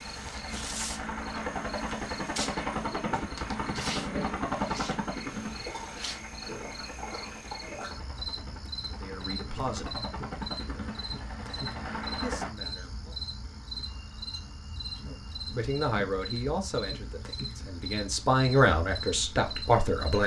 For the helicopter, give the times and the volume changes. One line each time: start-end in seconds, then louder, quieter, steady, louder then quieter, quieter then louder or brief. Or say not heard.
0.0-12.5 quieter then louder.